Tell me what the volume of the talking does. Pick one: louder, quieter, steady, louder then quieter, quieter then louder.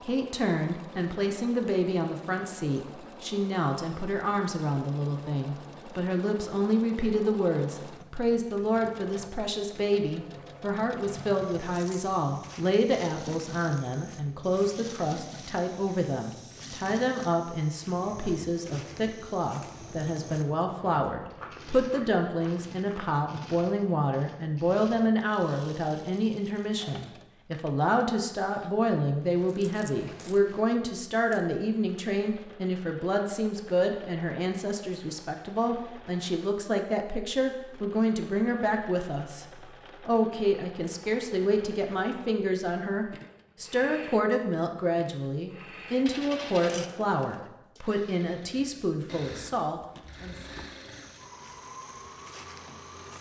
steady.